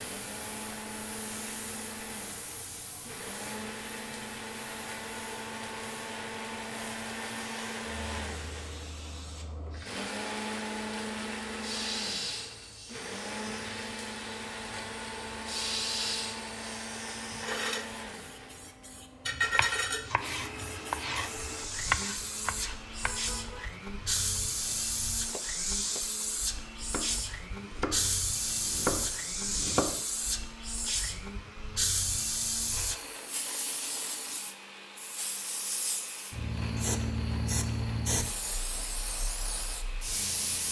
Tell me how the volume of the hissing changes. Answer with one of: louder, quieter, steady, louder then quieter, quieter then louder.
louder.